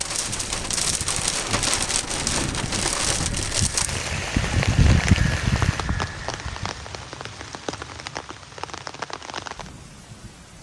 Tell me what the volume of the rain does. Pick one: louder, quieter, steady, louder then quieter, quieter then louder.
quieter.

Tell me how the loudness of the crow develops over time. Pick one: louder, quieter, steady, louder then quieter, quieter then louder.
louder.